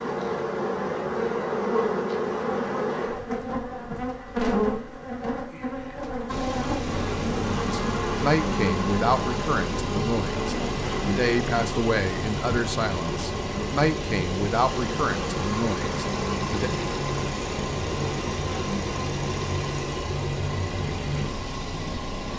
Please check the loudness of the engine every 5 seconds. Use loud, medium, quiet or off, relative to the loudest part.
off, loud, loud, loud, loud.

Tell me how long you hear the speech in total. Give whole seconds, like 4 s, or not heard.
9 s.